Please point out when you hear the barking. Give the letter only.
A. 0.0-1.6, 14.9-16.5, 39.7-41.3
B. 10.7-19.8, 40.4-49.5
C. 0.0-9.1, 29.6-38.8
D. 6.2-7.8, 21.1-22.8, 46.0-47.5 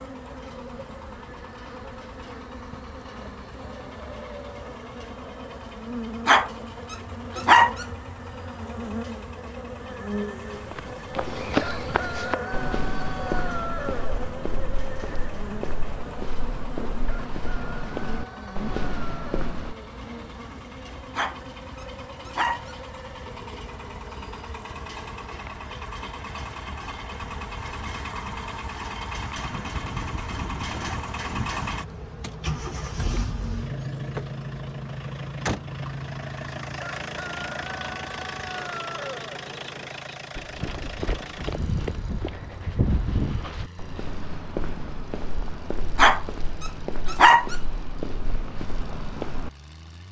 D.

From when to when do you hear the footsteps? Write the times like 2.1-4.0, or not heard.
10.7-19.8, 40.4-49.5.